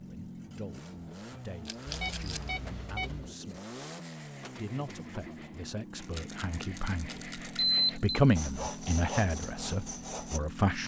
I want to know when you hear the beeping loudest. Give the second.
8 s.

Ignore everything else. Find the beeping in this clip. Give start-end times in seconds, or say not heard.
1.9-3.3, 7.5-8.2.